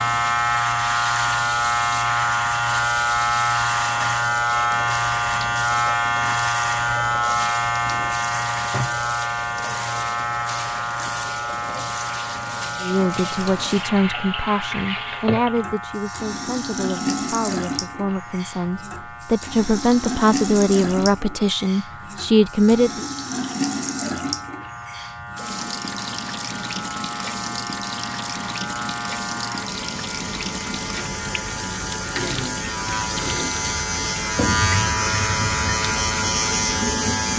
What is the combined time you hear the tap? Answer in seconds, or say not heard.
37 s.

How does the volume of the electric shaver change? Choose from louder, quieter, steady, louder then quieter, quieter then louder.
quieter then louder.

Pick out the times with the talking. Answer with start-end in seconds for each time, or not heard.
12.8-23.1.